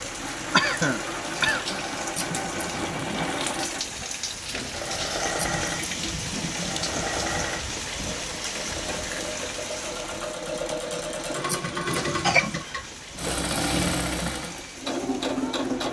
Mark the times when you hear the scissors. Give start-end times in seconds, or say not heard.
2.1-3.3, 5.3-7.4, 11.4-12.7.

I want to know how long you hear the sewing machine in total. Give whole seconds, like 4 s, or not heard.
16 s.